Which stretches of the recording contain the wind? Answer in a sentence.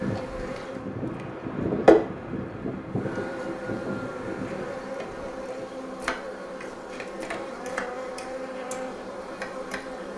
The wind can be heard from 0.0 to 5.3 s.